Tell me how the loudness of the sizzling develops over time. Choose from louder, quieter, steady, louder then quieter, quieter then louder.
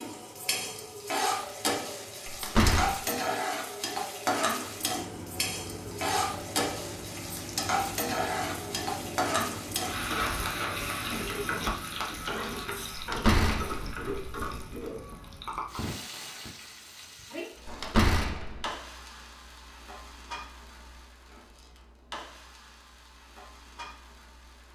quieter.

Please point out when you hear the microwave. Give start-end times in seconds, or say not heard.
4.6-12.2.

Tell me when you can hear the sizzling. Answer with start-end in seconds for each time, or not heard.
0.0-24.7.